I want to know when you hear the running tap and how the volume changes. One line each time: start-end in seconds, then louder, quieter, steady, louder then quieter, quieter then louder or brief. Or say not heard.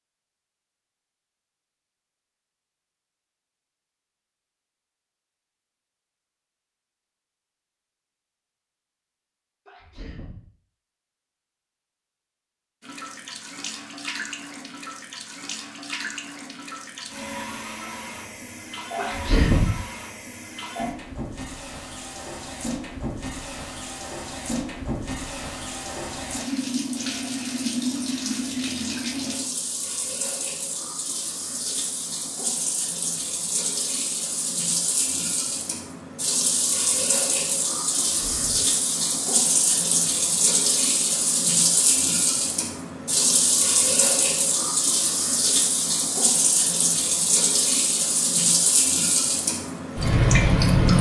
12.8-50.9 louder.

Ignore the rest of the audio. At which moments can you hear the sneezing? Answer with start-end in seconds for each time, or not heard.
9.7-10.4, 18.9-19.8, 38.1-38.7.